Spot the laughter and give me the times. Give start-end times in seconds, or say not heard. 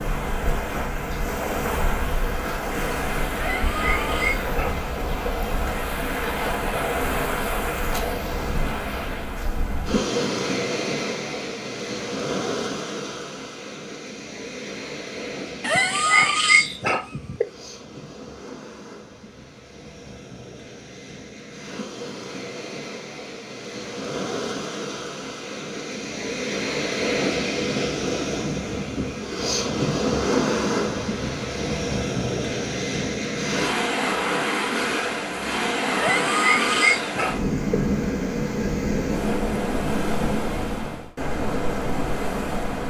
not heard.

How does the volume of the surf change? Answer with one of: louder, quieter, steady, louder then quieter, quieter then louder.
quieter then louder.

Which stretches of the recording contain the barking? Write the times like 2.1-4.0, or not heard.
3.4-4.9, 15.6-17.4, 36.0-37.5.